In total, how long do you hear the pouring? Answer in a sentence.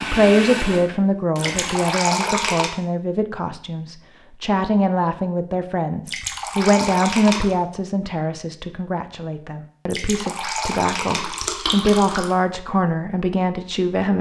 The pouring can be heard for 5 seconds in total.